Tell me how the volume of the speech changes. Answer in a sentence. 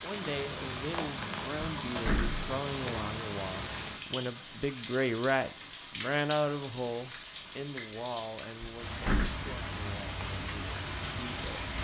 The volume of the speech goes up, then down.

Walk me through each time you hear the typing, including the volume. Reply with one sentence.
You can't hear the typing here.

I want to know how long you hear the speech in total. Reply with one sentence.
You can hear the speech for 12 seconds altogether.